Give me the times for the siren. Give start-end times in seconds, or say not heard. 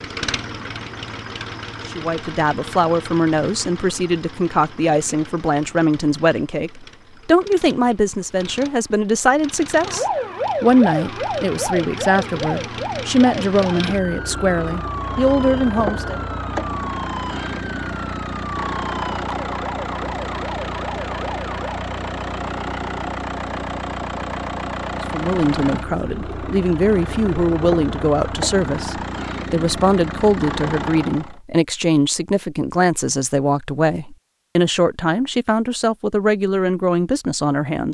9.8-21.8.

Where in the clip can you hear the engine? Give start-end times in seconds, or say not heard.
0.0-31.4.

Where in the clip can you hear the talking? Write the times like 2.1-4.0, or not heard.
1.9-16.2, 25.1-37.8.